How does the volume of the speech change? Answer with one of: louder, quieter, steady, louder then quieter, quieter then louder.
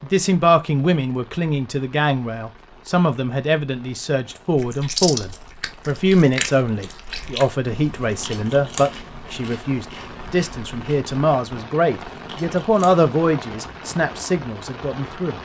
steady.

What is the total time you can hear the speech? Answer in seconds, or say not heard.
15 s.